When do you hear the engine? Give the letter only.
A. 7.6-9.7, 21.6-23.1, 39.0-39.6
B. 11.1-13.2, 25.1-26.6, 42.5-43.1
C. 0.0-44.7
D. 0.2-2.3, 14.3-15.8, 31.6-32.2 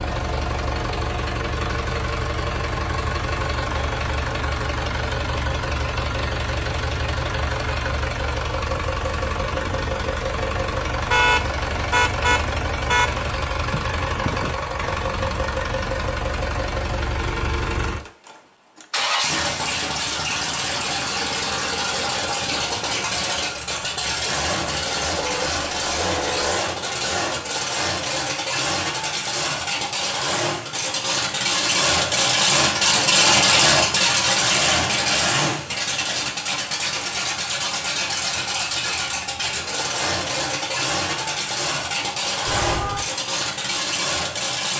C.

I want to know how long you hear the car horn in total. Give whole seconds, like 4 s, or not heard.
4 s.